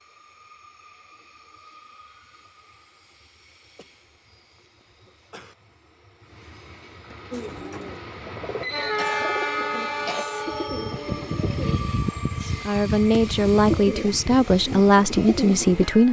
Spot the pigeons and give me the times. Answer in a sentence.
The pigeons can be heard from 7.3 to 15.8 s.